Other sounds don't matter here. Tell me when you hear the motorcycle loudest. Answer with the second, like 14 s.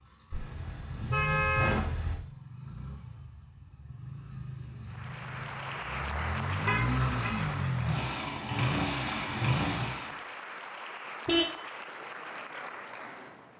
9 s.